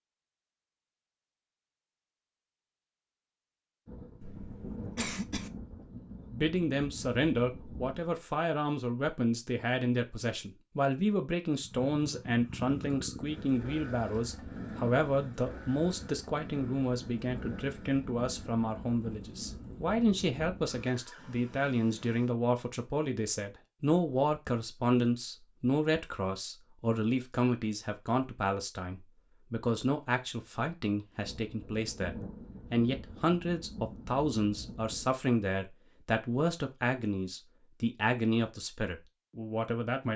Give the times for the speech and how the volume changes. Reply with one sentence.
The speech can be heard from 6.3 to 40.1 s, at a steady volume.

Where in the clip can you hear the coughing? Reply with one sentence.
You can hear the coughing from 4.2 to 5.5 s.